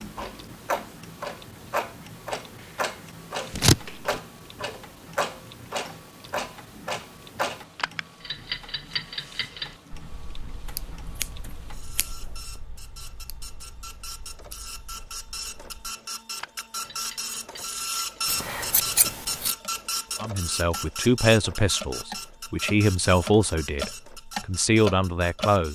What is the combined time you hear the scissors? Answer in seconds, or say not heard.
3 s.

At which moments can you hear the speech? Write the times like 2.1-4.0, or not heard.
20.2-25.7.